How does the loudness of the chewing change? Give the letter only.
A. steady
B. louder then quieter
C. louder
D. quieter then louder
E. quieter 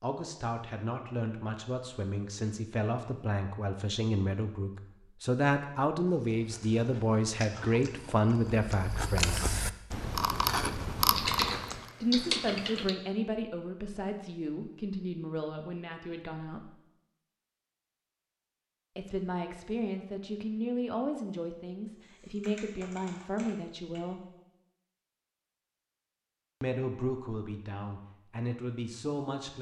C.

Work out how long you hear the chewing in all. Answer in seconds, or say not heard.
6 s.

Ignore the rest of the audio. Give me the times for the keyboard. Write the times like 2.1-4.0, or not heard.
11.1-12.9, 22.0-24.0.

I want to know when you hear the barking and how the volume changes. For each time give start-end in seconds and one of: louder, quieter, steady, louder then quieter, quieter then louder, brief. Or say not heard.
not heard.